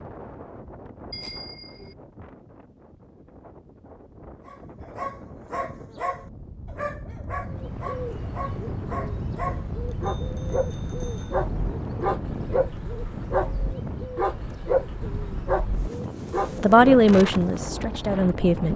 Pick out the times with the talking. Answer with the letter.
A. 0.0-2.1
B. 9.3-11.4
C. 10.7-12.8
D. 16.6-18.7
D.